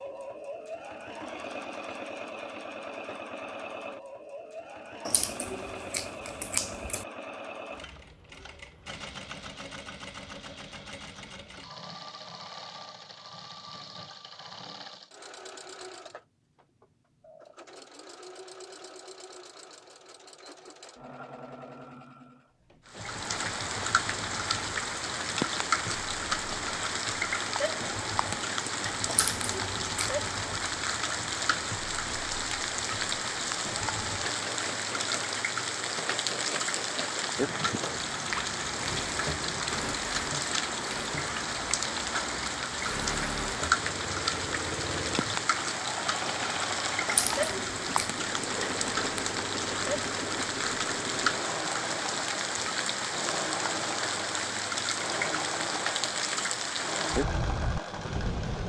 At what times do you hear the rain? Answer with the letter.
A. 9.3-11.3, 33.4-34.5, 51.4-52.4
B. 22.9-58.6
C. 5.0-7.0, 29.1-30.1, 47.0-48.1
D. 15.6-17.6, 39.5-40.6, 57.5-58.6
B.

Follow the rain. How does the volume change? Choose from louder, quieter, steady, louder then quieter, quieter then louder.
steady.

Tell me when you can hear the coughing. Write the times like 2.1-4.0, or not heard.
not heard.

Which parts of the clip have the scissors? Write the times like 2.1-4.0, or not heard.
5.0-7.0, 29.1-30.1, 47.0-48.1.